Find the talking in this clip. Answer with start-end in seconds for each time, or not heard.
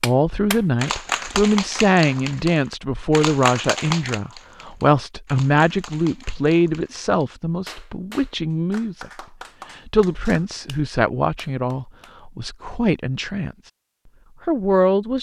0.0-9.1, 9.8-13.7, 14.4-15.1.